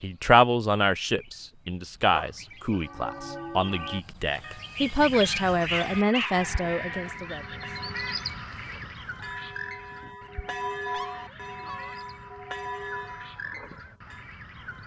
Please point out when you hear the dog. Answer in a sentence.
The dog can be heard from 2.1 to 2.8 s, from 5.1 to 7.2 s and from 10.9 to 12.0 s.